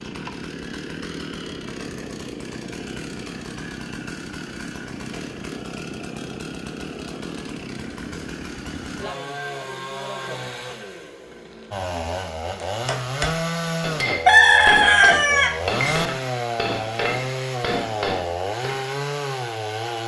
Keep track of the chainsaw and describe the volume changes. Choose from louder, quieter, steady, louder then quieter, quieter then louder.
louder.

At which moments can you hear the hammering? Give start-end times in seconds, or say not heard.
12.6-18.9.